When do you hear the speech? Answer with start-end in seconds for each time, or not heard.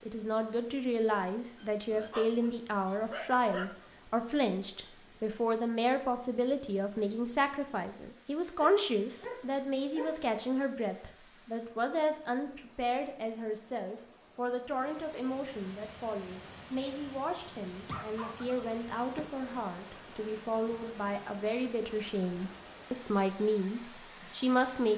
0.0-24.9.